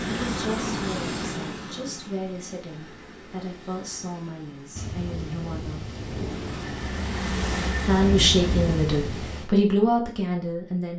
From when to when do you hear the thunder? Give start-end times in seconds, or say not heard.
4.8-9.5.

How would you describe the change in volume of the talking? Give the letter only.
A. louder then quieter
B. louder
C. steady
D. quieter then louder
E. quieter
B.